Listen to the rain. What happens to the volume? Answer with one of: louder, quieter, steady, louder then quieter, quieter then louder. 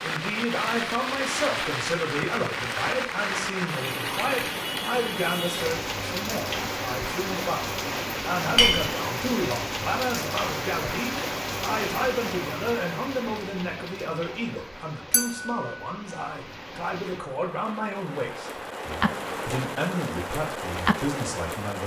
quieter then louder.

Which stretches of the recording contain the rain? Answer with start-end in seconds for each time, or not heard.
0.0-21.8.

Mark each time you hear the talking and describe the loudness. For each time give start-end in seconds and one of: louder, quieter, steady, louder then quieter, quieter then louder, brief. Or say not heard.
0.0-21.8 steady.